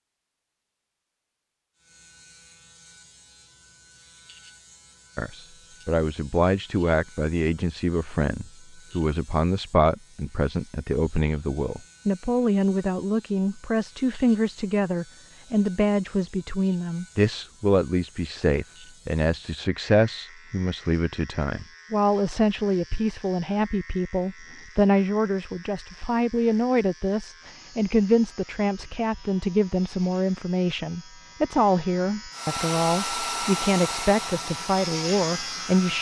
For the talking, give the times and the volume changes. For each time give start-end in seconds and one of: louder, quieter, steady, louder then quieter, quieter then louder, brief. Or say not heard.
5.2-35.9 steady.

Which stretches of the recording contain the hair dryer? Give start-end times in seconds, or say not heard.
32.3-35.9.